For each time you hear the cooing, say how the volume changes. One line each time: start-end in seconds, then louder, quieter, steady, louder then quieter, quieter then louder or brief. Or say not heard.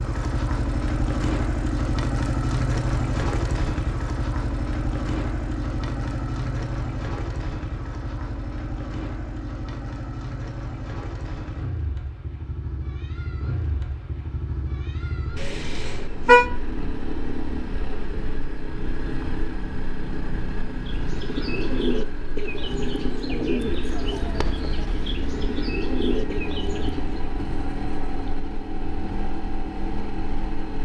20.8-27.2 quieter then louder.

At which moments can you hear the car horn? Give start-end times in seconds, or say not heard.
15.3-16.4.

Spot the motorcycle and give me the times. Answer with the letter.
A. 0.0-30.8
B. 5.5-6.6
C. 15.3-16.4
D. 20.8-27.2
A.